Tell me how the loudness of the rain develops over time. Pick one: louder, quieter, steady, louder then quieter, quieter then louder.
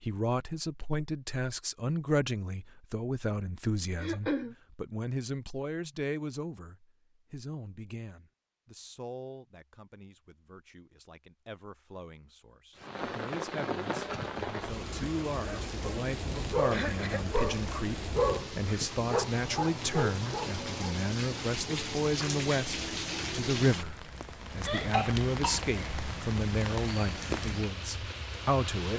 steady.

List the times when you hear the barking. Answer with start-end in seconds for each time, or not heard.
15.4-20.9.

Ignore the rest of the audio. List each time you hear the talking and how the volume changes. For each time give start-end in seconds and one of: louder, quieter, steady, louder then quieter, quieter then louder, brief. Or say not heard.
0.0-28.9 quieter then louder.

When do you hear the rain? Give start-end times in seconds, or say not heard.
12.8-28.9.